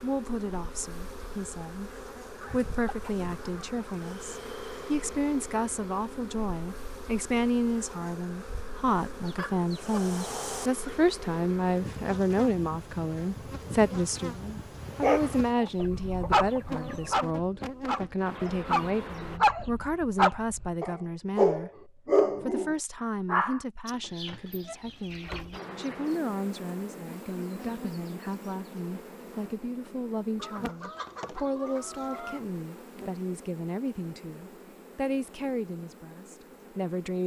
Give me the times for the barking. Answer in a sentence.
You can hear the barking from 15.0 to 23.6 s.